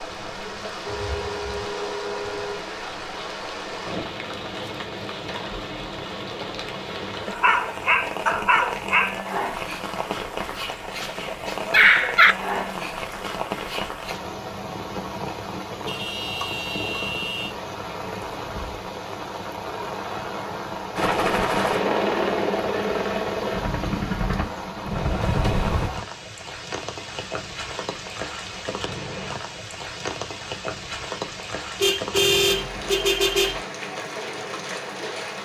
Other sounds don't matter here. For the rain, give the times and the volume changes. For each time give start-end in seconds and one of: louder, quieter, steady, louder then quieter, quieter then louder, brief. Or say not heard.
0.0-35.4 steady.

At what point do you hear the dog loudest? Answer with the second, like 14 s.
12 s.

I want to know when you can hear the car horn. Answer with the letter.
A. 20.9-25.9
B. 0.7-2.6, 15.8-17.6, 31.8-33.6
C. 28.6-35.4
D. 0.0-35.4
B.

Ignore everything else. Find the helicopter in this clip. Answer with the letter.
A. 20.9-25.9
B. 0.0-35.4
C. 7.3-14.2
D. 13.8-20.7
A.